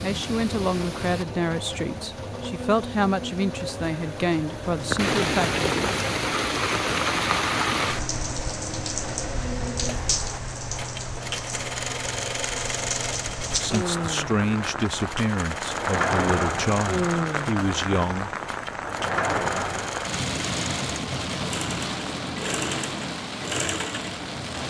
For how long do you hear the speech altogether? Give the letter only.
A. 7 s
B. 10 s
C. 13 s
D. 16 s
B.